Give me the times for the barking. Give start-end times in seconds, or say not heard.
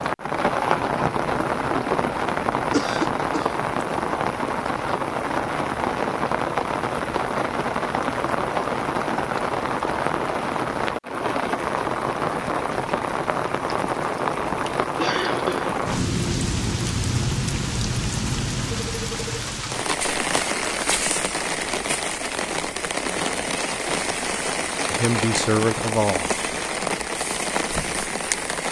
not heard.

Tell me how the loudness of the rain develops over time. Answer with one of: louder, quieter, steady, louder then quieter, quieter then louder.
steady.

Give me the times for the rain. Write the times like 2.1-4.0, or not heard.
0.0-28.6.